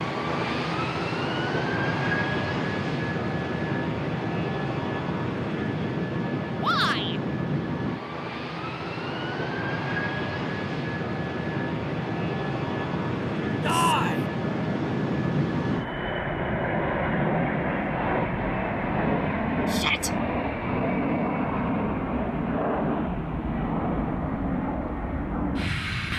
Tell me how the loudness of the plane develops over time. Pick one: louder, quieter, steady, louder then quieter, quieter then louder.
steady.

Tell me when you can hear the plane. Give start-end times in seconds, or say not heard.
0.0-26.1.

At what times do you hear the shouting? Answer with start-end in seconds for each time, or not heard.
6.6-7.2, 13.6-14.2, 19.7-20.1.